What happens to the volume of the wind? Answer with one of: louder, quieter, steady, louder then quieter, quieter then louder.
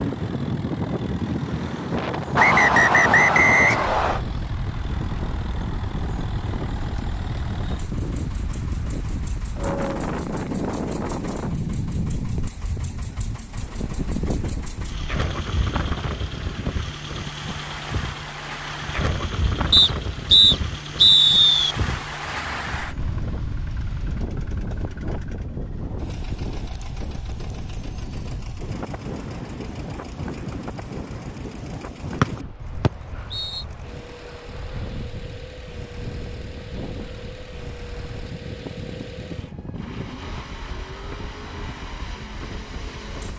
quieter.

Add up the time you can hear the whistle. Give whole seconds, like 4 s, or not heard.
5 s.